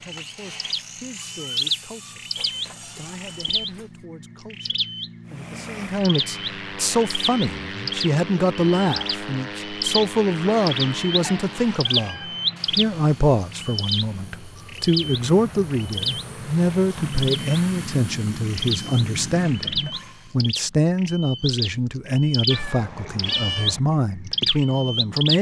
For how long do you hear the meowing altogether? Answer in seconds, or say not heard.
4 s.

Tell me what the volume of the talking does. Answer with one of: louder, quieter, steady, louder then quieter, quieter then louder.
louder.